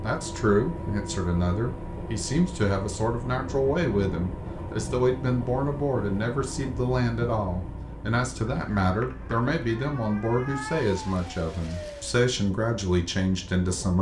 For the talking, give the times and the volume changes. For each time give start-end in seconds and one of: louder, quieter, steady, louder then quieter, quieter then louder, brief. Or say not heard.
0.0-13.9 steady.